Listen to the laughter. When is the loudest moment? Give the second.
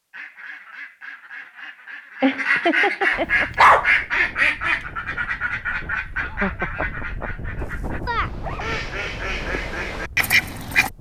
3 s.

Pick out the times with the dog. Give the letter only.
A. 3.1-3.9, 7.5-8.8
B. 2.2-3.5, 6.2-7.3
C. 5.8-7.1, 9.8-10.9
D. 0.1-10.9
A.